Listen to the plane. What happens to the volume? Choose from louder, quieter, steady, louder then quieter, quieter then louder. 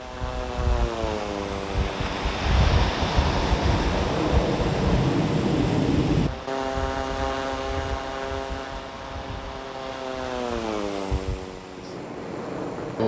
louder then quieter.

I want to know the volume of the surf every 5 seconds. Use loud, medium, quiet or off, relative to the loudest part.
loud, medium, medium.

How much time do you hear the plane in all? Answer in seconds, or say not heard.
13 s.